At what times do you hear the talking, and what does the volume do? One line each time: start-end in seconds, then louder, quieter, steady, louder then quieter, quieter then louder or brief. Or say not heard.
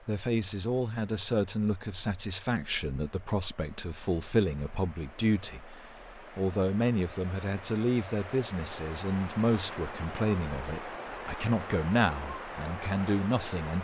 0.1-13.7 steady.